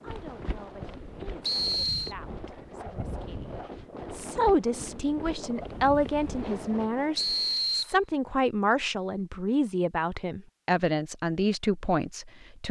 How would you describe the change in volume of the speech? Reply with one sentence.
The volume of the speech goes up.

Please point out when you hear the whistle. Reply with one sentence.
You can hear the whistle from 1.4 to 2.1 s and from 7.2 to 8.0 s.